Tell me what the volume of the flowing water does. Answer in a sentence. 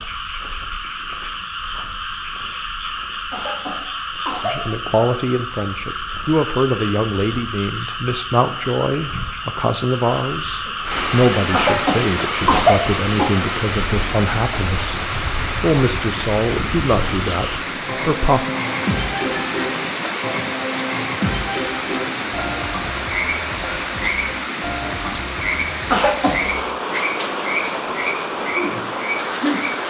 The volume of the flowing water stays about the same.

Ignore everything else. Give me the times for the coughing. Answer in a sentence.
The coughing can be heard from 3.3 to 4.7 s, from 11.5 to 13.4 s and from 25.9 to 26.4 s.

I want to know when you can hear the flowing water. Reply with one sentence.
You can hear the flowing water from 10.8 to 29.8 s.